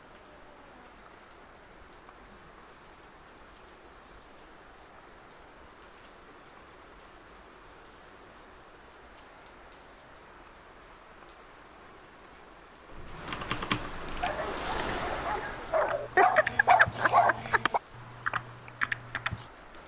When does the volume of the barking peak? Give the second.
17 s.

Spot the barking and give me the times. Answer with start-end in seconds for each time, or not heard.
14.2-17.8.